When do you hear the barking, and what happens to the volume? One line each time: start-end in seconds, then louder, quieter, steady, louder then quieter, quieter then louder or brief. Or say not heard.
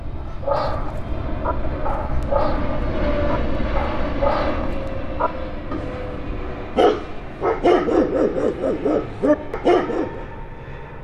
0.2-10.2 louder.